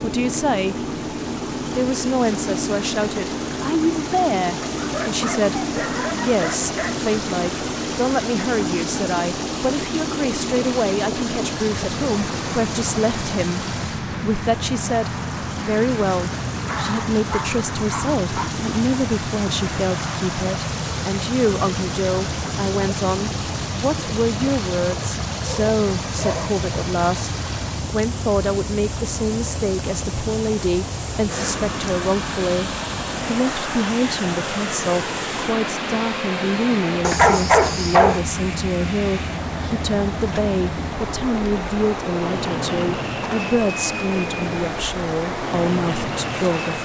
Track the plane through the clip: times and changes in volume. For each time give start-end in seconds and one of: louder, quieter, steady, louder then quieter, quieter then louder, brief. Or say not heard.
0.0-46.8 steady.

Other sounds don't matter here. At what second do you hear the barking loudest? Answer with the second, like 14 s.
37 s.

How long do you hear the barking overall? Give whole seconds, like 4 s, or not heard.
7 s.